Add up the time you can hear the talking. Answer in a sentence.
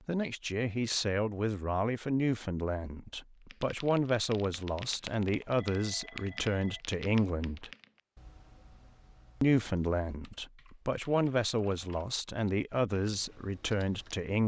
You can hear the talking for 13 seconds altogether.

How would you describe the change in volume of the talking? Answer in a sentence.
The volume of the talking stays about the same.